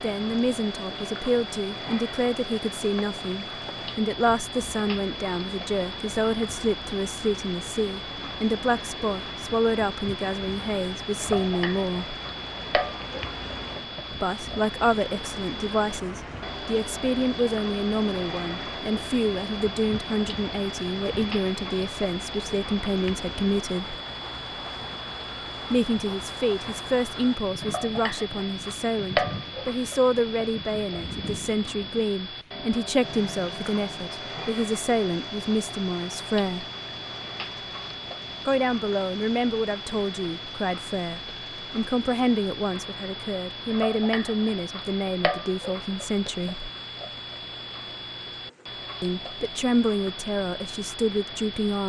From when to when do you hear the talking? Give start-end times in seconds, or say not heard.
0.0-12.2, 14.1-23.9, 25.7-36.6, 38.5-46.7, 49.0-51.8.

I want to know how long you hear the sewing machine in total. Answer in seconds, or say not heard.
not heard.